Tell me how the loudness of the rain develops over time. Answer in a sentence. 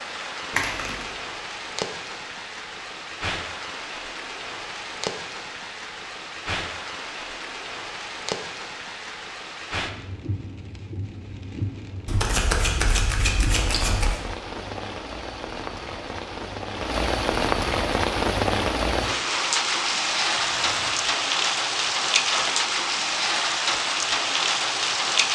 The loudness of the rain goes up.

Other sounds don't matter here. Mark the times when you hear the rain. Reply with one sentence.
You can hear the rain from 0.0 to 25.3 s.